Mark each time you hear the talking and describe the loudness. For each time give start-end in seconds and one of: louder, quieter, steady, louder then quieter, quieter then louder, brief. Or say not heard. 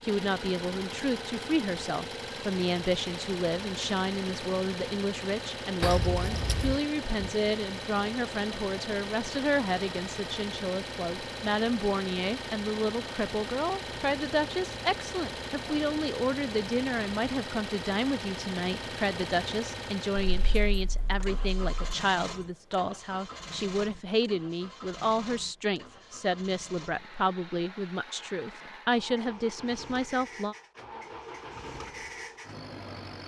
0.0-30.6 steady.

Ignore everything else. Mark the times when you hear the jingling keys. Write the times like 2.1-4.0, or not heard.
5.8-6.8, 20.2-21.8.